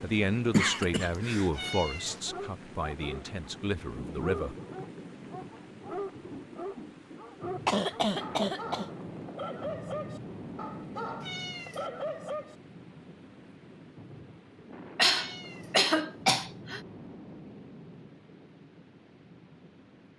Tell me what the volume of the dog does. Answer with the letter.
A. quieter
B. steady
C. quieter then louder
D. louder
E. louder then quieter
B.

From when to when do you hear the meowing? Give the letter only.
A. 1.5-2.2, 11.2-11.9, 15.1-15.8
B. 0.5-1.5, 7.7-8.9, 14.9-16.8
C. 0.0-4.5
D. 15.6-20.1
A.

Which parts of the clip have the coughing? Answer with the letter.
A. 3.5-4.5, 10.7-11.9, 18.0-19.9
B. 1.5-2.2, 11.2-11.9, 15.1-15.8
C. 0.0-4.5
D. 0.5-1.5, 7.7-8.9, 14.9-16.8
D.